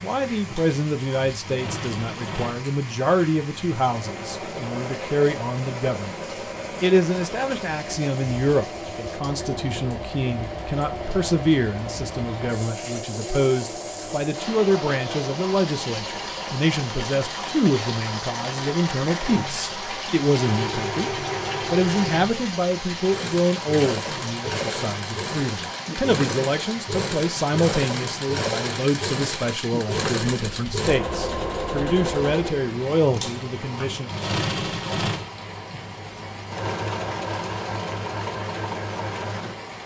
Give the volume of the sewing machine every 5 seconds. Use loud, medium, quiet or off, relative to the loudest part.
medium, medium, medium, medium, loud, loud, loud, loud.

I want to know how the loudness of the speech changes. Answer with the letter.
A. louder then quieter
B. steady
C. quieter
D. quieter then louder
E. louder
B.